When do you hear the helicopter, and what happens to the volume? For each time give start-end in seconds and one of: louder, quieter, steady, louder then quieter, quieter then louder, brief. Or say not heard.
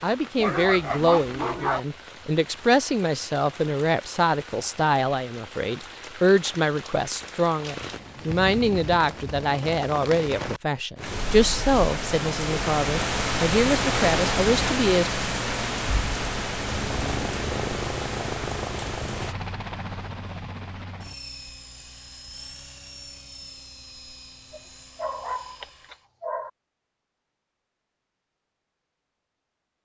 16.5-26.1 quieter.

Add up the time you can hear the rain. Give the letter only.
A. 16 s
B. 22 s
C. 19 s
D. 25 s
C.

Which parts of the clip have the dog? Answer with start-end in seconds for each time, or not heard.
0.3-1.8, 24.5-26.5.